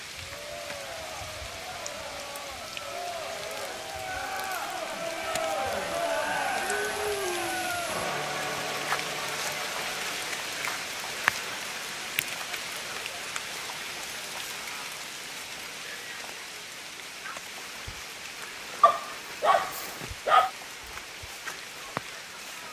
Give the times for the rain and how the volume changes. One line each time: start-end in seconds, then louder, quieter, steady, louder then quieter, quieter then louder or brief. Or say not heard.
0.0-22.6 louder then quieter.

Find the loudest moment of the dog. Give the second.
20 s.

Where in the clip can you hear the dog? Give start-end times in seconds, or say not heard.
18.8-20.5.